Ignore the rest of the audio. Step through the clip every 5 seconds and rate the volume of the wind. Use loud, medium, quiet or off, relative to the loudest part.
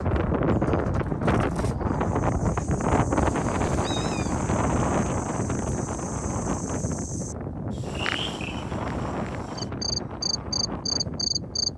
loud, medium, medium.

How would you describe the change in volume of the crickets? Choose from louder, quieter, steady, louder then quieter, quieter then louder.
louder.